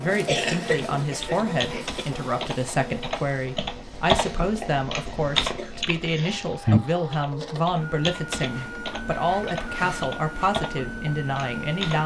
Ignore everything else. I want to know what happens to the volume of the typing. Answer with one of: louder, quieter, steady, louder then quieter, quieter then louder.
louder then quieter.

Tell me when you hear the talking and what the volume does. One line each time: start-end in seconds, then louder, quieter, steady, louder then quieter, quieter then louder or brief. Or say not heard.
0.0-12.0 steady.